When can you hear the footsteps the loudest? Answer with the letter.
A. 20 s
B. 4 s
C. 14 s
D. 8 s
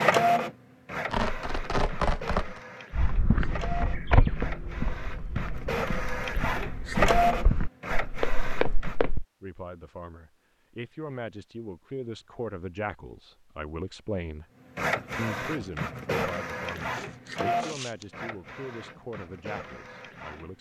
B.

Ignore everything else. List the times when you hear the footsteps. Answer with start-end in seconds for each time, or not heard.
2.9-9.2.